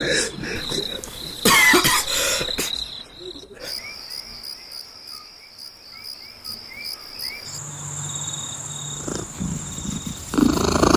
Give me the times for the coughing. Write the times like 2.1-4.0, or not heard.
0.6-2.7.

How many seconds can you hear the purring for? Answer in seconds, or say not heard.
2 s.